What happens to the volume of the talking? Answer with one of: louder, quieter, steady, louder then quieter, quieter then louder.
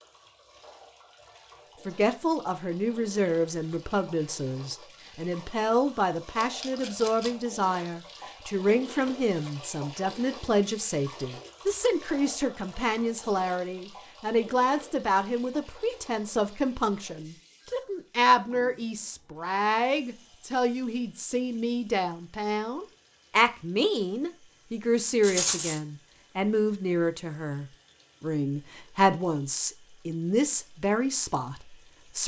steady.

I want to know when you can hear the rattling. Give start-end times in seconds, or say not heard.
6.3-7.3, 25.2-25.8.